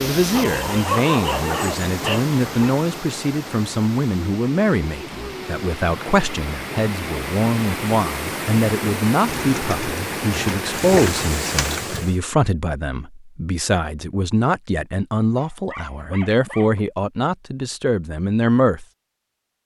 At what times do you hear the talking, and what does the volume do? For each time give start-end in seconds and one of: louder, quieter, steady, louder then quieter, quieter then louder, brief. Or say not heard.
0.1-18.9 steady.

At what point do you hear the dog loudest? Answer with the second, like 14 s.
1 s.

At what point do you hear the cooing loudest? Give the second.
11 s.